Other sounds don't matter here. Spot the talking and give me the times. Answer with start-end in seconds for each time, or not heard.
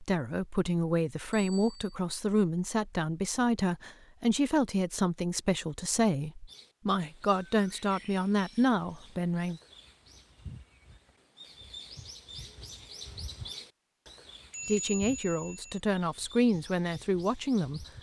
0.0-9.6, 14.7-17.9.